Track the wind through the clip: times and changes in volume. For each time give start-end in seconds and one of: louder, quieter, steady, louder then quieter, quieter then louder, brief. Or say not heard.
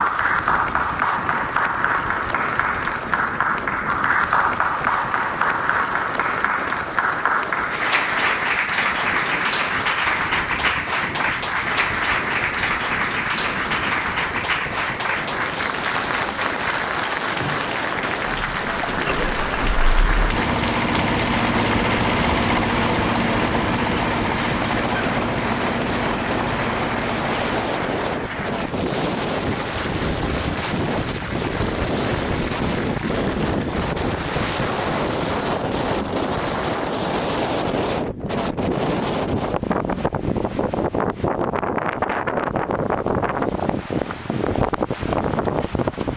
0.0-46.1 louder.